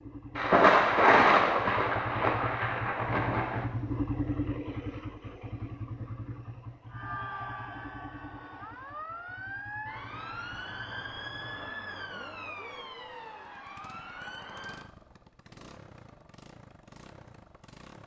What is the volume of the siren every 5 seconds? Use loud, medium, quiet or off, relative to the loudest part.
off, loud, loud, off.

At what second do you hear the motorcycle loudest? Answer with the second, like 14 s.
4 s.